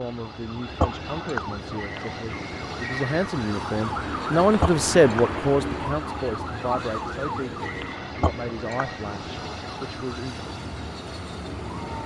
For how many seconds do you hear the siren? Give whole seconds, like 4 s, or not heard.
12 s.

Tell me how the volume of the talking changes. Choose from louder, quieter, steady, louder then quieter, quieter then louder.
louder then quieter.